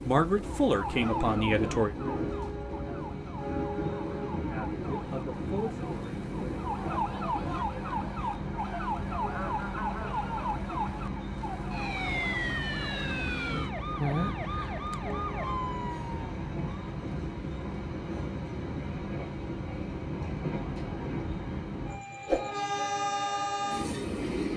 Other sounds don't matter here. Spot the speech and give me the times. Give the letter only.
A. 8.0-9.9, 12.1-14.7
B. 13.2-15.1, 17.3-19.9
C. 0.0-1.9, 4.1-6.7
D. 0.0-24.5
C.